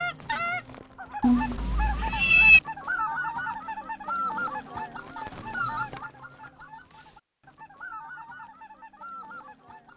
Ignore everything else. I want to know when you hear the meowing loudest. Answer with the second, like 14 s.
2 s.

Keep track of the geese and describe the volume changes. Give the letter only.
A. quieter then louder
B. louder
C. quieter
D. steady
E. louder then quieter
C.